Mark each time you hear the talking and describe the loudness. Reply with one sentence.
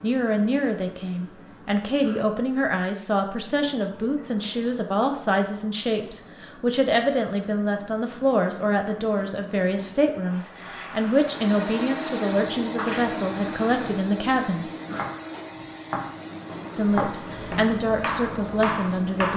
The talking can be heard from 0.0 to 14.7 s, at a steady volume; and briefly from 16.8 to 19.3 s.